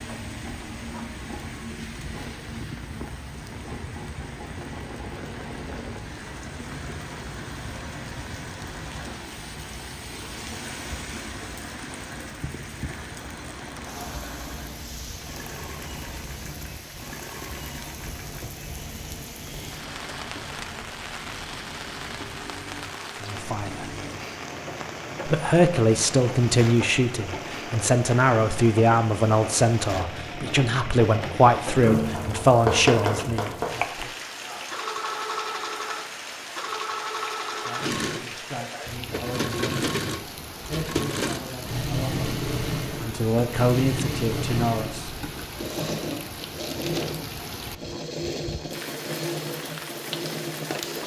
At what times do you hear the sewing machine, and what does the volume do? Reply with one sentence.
You can hear the sewing machine from 0.0 to 51.0 s, getting louder.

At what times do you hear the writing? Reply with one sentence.
The writing can be heard from 31.8 to 33.9 s.